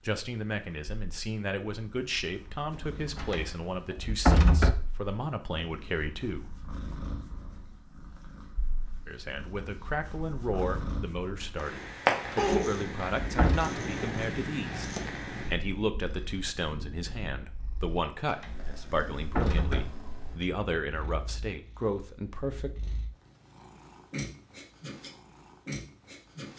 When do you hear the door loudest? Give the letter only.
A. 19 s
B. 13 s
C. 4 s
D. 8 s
C.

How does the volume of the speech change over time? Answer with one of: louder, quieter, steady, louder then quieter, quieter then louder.
steady.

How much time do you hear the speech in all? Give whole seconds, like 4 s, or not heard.
20 s.